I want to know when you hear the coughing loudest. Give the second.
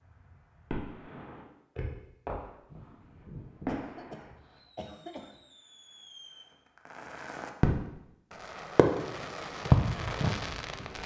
5 s.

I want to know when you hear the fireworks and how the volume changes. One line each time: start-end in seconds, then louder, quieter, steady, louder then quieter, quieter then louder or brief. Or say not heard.
0.1-11.0 quieter then louder.